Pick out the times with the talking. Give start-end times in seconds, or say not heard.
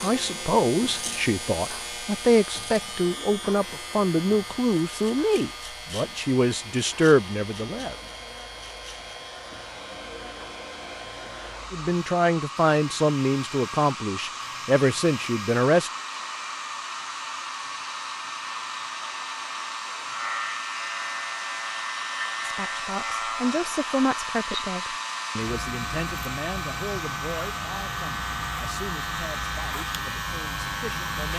0.0-8.0, 11.7-15.9, 22.4-31.3.